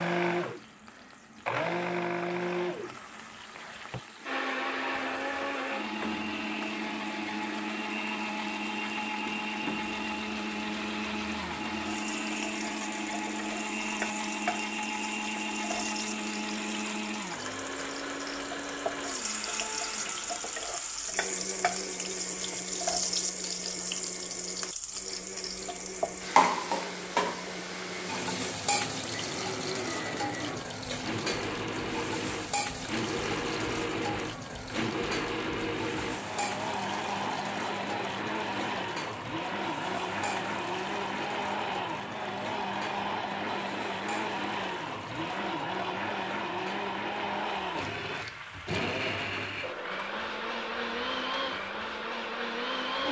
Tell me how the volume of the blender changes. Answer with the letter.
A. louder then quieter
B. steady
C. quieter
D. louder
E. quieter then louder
E.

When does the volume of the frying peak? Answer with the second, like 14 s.
27 s.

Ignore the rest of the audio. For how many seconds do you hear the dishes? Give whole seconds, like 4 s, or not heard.
not heard.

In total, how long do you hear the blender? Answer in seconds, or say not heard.
53 s.